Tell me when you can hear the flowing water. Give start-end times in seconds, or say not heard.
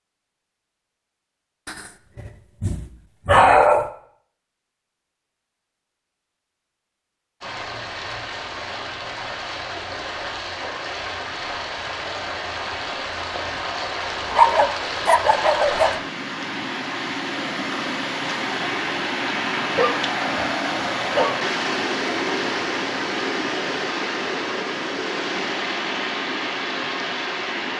7.4-27.7.